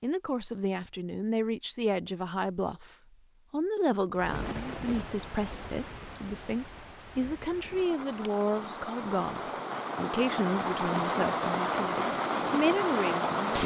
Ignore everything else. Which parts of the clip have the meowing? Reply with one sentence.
The meowing can't be heard in this clip.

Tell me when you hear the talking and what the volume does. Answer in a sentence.
You can hear the talking briefly from 0.0 to 2.9 s; and from 3.5 to 13.6 s, at a steady volume.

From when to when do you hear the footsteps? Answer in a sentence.
The footsteps can't be heard in this clip.